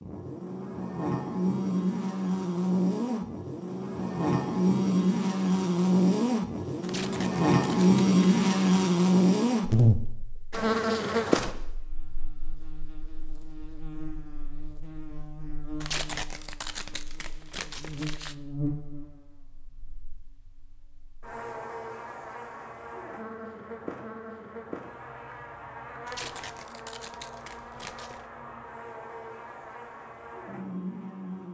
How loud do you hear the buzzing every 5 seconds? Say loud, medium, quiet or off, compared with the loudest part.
medium, loud, medium, quiet, quiet, quiet, quiet.